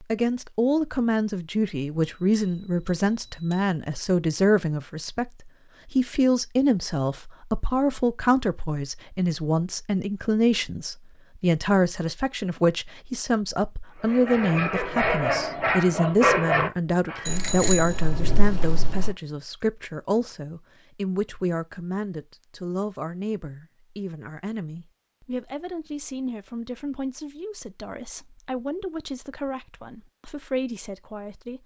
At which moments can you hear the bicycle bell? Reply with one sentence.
The bicycle bell can be heard from 2.0 to 3.6 s and from 17.2 to 19.1 s.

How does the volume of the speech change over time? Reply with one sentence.
The volume of the speech goes down.